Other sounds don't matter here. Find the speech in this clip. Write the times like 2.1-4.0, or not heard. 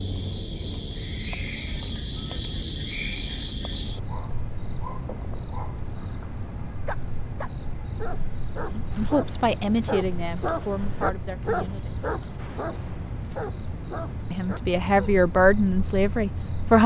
8.7-12.0, 14.3-16.8.